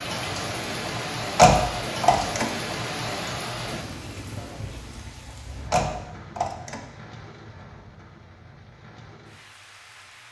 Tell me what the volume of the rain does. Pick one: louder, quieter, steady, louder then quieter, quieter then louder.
quieter.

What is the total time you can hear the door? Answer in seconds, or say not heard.
2 s.